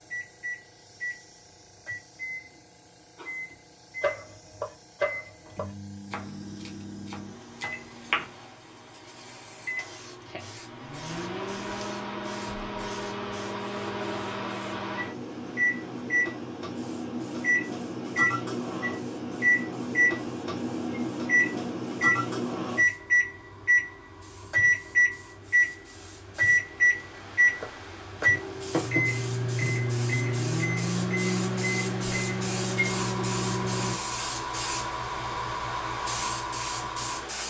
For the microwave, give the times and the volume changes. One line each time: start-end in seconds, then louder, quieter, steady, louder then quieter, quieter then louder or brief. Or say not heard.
0.1-34.0 louder.